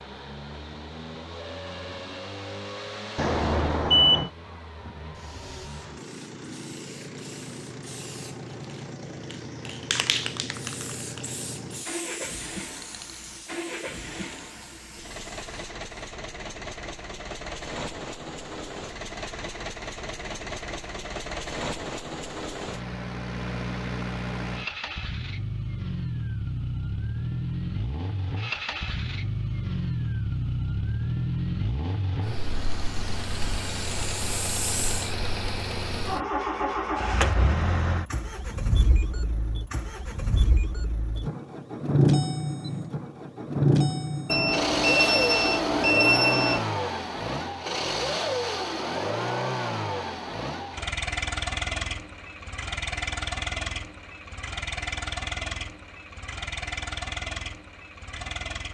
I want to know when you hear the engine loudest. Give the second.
42 s.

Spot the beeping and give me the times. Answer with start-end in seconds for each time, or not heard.
3.1-4.3, 44.2-46.6.